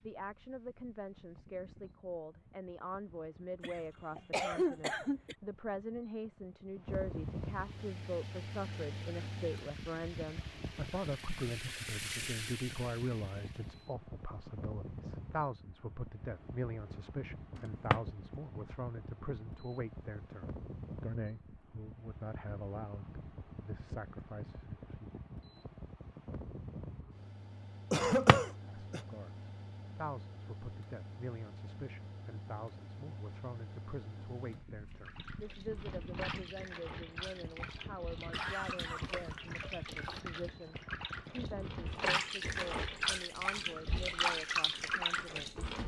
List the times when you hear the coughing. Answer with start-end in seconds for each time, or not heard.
3.6-5.3, 27.9-29.1, 38.3-40.2.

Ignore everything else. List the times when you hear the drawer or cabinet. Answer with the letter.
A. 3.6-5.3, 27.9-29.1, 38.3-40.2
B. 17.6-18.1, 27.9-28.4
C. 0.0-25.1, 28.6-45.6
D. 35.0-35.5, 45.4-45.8
B.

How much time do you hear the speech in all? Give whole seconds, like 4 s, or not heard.
42 s.